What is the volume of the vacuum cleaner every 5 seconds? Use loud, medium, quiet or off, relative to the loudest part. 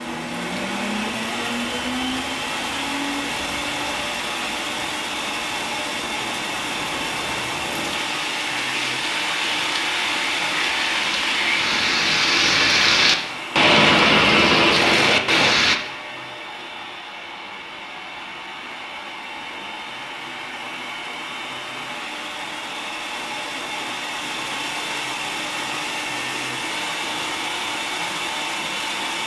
loud, loud, loud, medium, loud, loud.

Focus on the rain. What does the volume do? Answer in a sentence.
The volume of the rain goes up.